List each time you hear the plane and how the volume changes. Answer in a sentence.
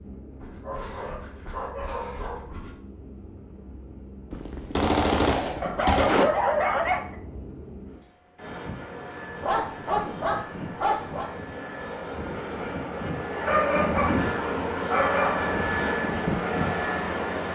The plane can be heard from 0.0 to 17.4 s, getting louder.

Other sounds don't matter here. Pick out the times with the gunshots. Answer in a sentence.
The gunshots can be heard from 4.3 to 6.2 s.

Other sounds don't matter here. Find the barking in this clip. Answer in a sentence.
You can hear the barking from 0.4 to 2.8 s, from 5.6 to 7.2 s, from 9.4 to 11.3 s and from 13.3 to 15.6 s.